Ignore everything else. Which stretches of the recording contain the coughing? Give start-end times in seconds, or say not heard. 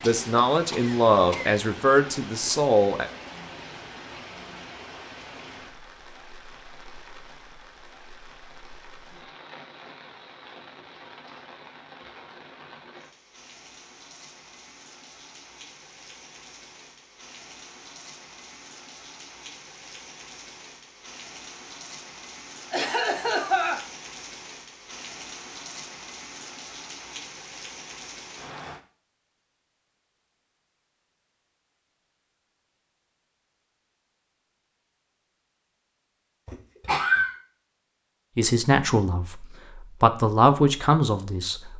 0.0-1.6, 22.7-23.8, 36.5-37.4.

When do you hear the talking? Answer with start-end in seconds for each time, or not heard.
0.0-3.1, 38.4-41.7.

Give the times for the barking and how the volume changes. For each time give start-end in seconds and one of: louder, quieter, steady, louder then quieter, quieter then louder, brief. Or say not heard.
not heard.